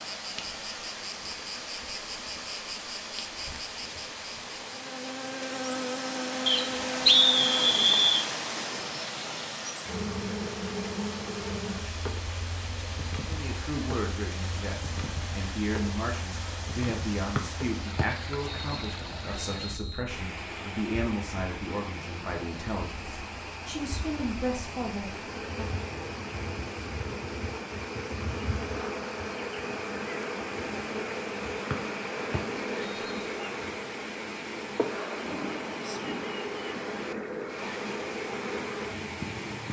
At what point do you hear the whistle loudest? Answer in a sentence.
The loudest moment of the whistle is at 7 seconds.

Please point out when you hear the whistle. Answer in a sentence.
The whistle can be heard from 6.5 to 8.2 s, from 17.4 to 20.1 s and from 31.7 to 33.2 s.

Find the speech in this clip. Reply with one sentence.
The speech can be heard from 13.2 to 25.8 s.